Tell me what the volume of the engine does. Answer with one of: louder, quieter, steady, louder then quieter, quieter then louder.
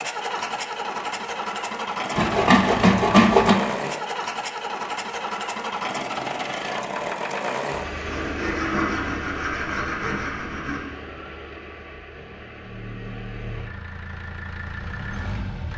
quieter.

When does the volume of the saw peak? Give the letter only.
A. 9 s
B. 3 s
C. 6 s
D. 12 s
B.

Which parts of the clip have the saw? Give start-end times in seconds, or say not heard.
2.1-3.6, 8.1-10.8.